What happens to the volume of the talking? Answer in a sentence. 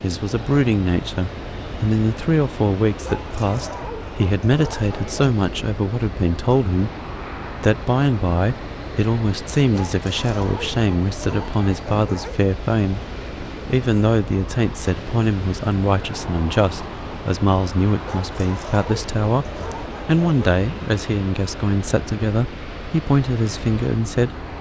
The loudness of the talking stays about the same.